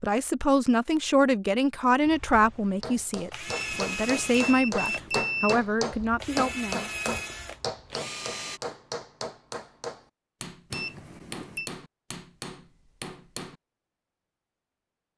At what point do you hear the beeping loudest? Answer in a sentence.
The volume of the beeping peaks at 5 seconds.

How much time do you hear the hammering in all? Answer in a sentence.
The hammering can be heard for 11 seconds in total.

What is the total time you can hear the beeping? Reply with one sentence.
The beeping can be heard for 3 seconds in total.